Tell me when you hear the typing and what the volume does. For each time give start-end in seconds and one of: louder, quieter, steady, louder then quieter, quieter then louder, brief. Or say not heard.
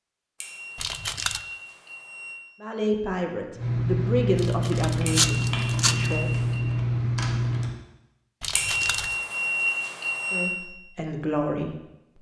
3.5-7.7 steady.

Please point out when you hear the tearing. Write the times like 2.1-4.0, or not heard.
0.8-1.4, 4.3-6.1, 8.4-9.2.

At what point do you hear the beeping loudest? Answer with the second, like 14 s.
10 s.